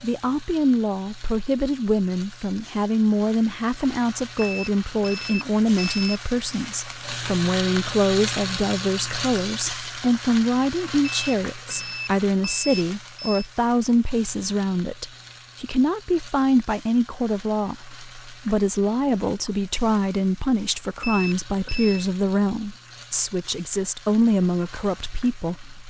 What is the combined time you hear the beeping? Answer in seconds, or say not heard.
5 s.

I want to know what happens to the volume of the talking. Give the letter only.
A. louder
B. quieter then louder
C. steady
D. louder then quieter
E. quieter
C.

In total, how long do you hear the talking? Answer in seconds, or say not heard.
26 s.